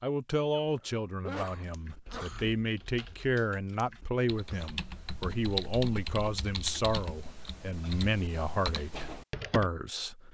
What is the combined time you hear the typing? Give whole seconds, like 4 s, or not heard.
8 s.